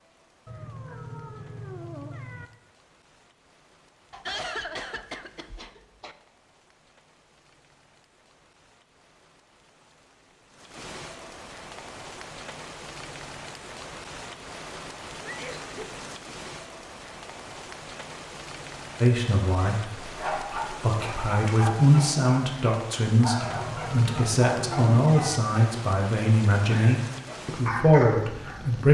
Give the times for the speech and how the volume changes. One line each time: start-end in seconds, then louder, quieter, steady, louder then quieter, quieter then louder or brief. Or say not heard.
19.0-28.8 louder.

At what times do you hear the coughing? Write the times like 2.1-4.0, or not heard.
4.1-6.2, 15.2-15.9.